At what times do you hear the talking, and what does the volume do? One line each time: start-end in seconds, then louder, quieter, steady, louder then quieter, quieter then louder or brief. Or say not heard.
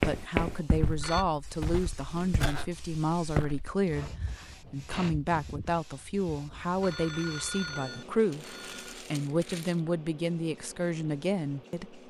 0.1-12.0 steady.